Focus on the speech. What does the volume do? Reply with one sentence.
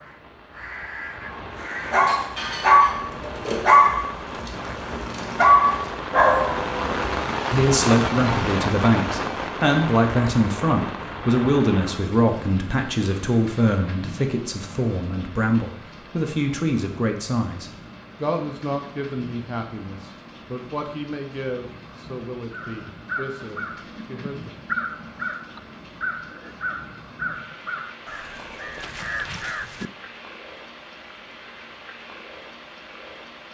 The loudness of the speech goes down.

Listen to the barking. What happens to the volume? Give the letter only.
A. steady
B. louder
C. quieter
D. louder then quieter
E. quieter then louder
E.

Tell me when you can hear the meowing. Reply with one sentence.
The meowing can't be heard in this clip.